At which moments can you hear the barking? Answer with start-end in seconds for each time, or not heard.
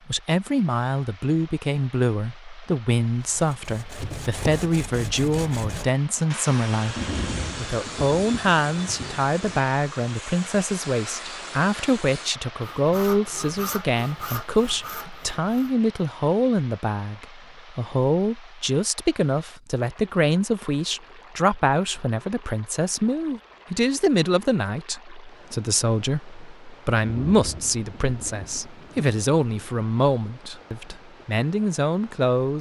not heard.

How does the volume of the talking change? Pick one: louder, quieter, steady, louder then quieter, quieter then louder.
steady.